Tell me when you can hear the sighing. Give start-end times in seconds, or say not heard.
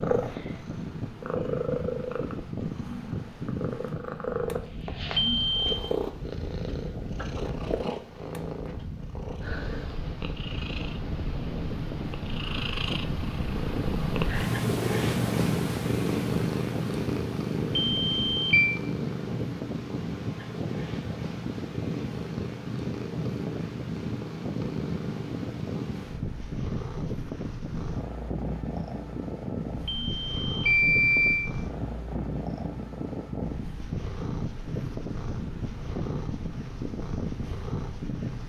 not heard.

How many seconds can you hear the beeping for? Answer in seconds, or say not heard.
3 s.